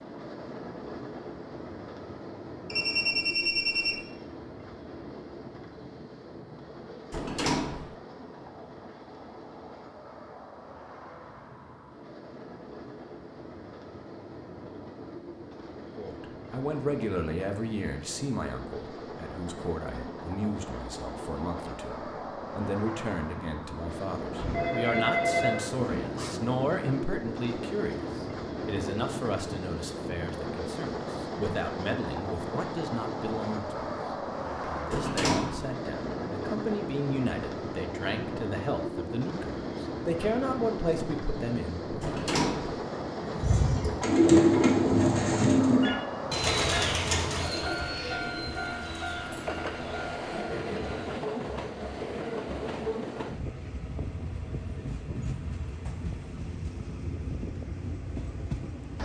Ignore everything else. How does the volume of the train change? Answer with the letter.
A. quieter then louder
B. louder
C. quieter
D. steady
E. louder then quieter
B.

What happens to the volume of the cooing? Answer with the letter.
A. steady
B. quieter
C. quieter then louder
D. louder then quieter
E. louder
B.